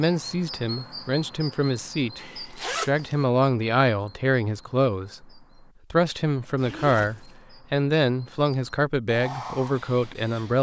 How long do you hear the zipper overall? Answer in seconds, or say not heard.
2 s.